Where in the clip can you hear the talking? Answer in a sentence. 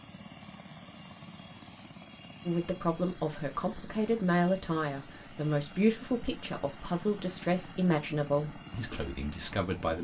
You can hear the talking from 2.5 to 9.9 s.